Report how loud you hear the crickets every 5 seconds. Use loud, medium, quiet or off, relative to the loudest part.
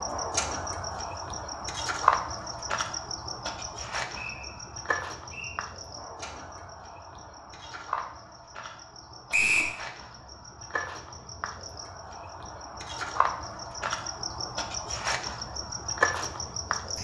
loud, medium, medium, loud.